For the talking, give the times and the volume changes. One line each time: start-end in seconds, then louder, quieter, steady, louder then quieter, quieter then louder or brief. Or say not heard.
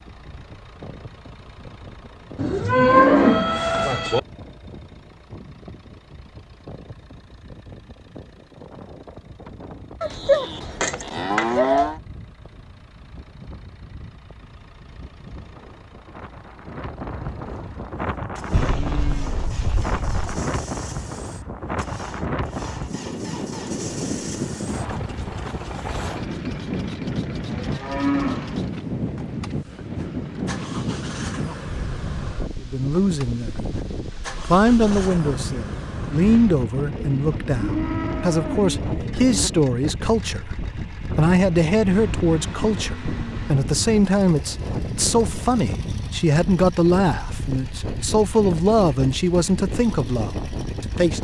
32.6-51.1 steady.